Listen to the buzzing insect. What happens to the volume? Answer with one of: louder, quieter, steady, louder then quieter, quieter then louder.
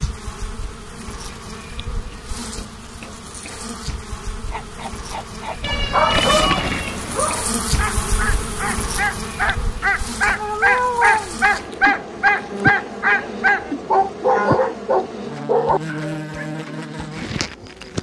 louder.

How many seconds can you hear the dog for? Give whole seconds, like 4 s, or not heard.
12 s.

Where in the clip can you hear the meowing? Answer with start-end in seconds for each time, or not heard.
5.6-7.3, 10.3-11.4.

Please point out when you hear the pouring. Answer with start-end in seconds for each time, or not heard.
6.1-6.8.